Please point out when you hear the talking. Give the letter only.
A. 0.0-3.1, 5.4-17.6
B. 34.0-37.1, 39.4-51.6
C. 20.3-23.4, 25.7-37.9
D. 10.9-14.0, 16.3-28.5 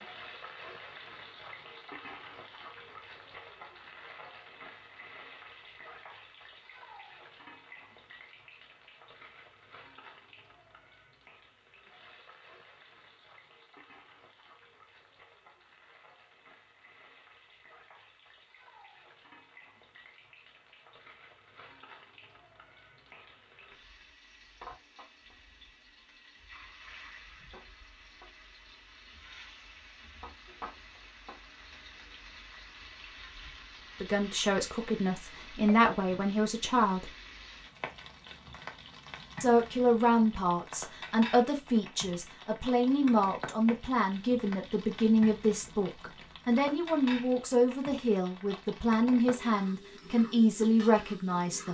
B.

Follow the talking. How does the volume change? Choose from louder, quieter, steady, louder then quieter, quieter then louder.
steady.